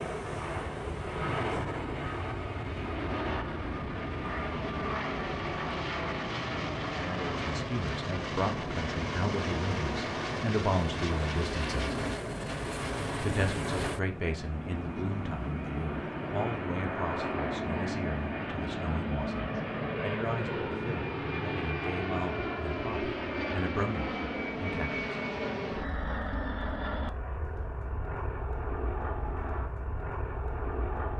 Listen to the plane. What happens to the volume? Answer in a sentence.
The volume of the plane stays about the same.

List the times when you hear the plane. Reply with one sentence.
The plane can be heard from 0.0 to 31.1 s.